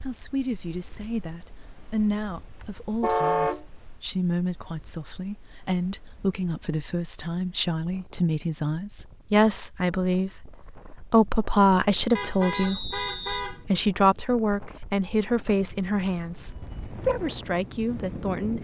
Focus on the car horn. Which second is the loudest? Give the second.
3 s.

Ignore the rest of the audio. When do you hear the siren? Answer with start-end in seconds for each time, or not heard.
not heard.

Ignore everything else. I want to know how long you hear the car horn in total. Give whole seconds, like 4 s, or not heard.
2 s.